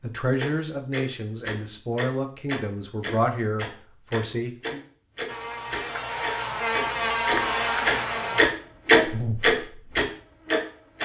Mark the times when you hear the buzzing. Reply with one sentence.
You can hear the buzzing from 5.2 to 10.9 s.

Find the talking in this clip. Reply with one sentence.
The talking can be heard from 0.0 to 4.8 s.